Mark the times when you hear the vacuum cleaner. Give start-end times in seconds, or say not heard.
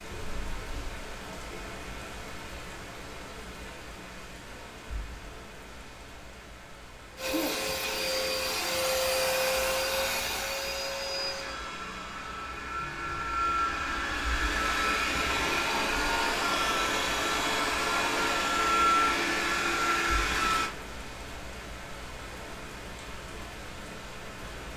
7.2-20.7.